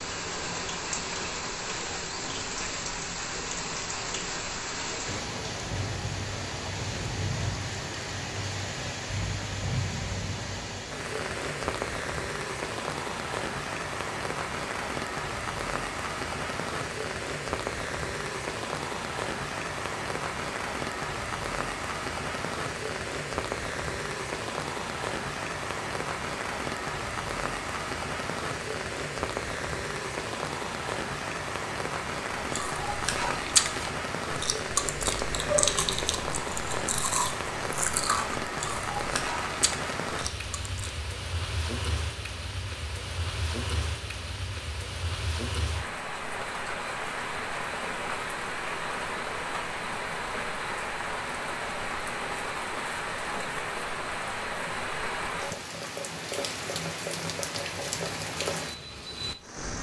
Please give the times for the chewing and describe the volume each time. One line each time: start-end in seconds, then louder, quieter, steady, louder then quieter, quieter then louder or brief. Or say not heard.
32.5-41.0 quieter.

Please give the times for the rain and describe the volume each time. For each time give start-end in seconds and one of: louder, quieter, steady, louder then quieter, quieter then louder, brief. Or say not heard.
0.0-59.7 steady.